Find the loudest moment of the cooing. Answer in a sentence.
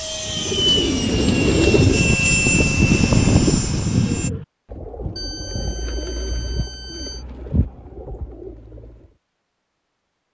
The volume of the cooing peaks at 2 seconds.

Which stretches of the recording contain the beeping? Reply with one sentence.
The beeping can be heard from 5.2 to 7.2 s.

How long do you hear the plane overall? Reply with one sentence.
The plane can be heard for 4 seconds in total.